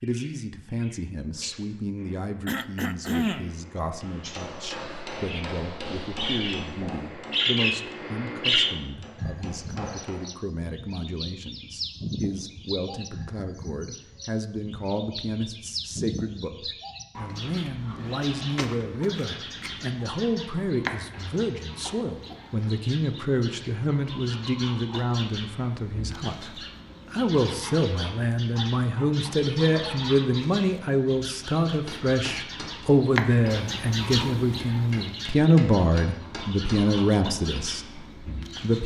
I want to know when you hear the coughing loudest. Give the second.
3 s.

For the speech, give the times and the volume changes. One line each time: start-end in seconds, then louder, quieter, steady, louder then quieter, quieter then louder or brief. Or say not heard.
0.0-38.8 louder.